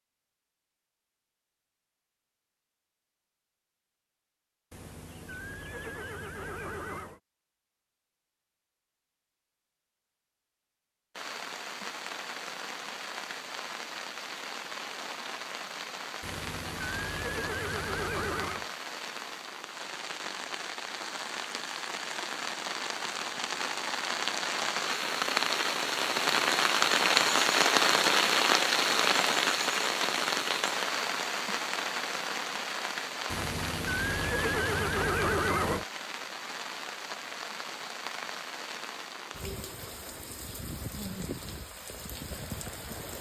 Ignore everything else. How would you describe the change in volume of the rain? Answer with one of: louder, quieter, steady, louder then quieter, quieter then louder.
louder then quieter.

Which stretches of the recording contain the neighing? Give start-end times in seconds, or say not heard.
4.7-7.2, 16.2-18.7, 33.3-35.9.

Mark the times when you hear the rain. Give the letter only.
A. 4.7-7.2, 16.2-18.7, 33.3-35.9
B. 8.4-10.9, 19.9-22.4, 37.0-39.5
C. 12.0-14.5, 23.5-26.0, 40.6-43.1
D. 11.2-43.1
D.